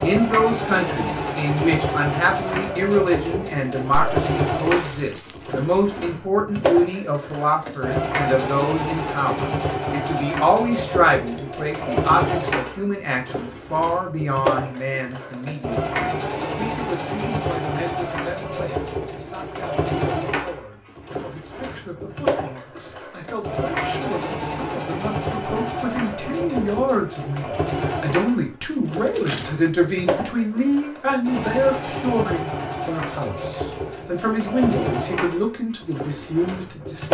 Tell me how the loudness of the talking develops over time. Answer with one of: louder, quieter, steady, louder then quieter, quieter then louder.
quieter then louder.